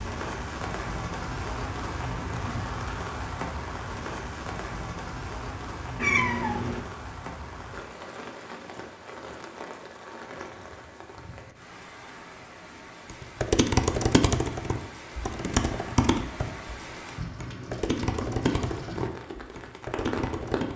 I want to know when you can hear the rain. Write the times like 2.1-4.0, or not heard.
0.0-20.7.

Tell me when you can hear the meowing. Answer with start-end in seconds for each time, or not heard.
6.0-6.8.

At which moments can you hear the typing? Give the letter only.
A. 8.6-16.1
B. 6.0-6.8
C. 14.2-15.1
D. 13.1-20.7
D.